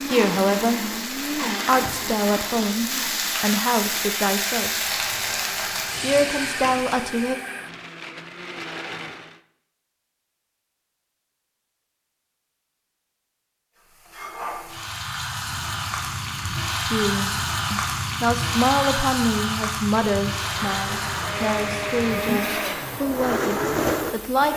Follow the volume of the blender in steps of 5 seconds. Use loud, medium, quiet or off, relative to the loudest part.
loud, medium, off, off, loud.